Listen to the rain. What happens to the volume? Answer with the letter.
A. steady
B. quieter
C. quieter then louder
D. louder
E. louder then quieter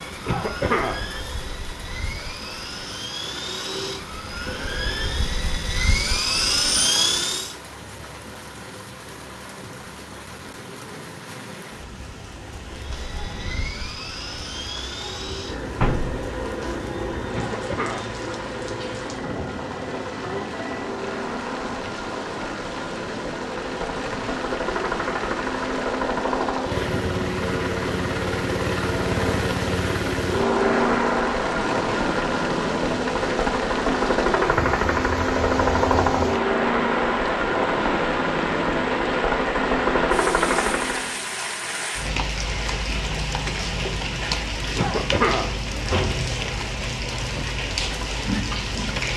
D.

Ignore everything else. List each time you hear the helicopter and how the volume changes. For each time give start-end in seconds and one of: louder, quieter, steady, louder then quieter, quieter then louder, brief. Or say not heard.
0.0-7.5 louder
12.7-41.1 louder.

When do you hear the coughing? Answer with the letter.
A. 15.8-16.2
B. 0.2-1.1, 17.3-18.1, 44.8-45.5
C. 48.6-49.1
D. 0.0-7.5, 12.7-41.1
B.